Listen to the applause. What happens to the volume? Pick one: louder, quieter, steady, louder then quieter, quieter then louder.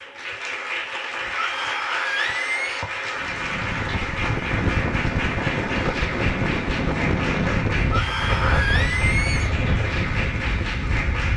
steady.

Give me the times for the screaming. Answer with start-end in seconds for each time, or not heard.
1.4-2.9, 7.9-9.6.